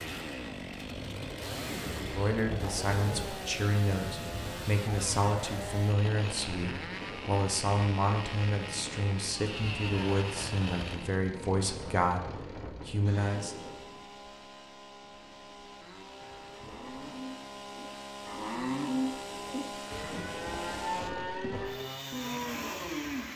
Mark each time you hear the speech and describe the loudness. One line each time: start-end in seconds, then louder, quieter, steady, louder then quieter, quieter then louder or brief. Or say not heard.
1.9-13.6 steady.